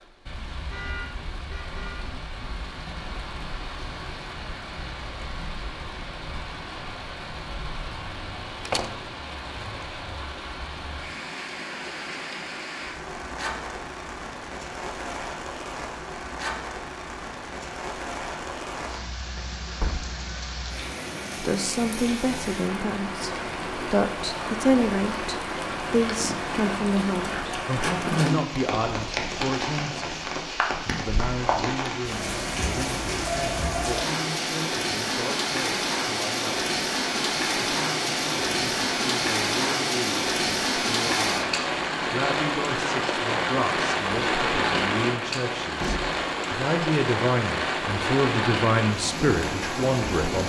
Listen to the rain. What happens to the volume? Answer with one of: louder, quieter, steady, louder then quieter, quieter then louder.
louder.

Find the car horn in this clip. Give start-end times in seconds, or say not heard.
0.7-2.0.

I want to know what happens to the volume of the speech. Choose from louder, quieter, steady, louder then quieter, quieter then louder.
quieter then louder.